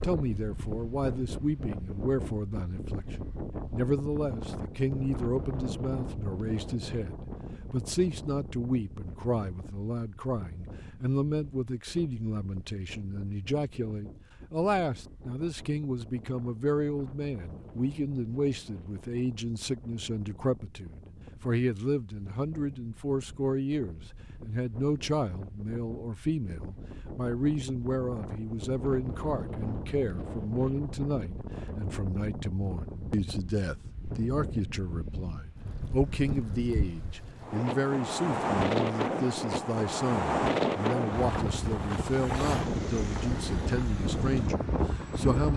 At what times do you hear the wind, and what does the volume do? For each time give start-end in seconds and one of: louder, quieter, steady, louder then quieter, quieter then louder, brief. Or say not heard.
0.0-45.5 quieter then louder.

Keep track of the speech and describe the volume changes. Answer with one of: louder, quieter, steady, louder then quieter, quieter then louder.
steady.